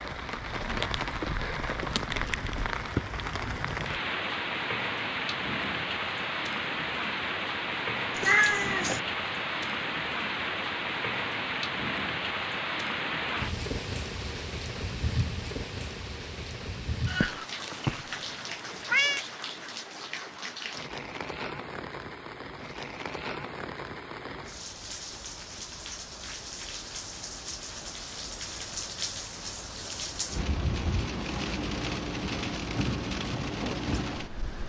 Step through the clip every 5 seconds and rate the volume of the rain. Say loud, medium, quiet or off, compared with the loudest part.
loud, loud, loud, medium, medium, medium, loud.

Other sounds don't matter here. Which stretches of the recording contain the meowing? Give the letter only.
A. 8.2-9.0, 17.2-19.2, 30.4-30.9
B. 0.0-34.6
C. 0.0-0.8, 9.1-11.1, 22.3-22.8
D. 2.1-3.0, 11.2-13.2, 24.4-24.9
A.